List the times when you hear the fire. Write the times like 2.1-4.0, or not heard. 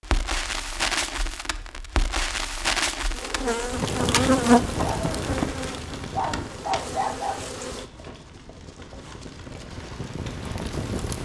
0.0-11.2.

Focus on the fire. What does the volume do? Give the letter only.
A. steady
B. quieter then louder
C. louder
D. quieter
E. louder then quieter
B.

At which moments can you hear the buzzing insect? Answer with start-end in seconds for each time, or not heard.
3.1-7.8.